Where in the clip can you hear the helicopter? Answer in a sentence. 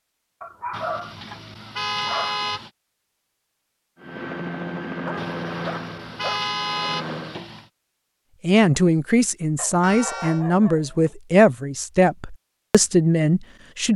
The helicopter can be heard from 4.0 to 7.4 s.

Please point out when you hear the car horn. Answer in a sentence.
The car horn can be heard from 0.7 to 2.7 s, from 5.2 to 7.7 s and from 9.8 to 10.4 s.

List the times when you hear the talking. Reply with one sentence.
The talking can be heard from 8.4 to 13.9 s.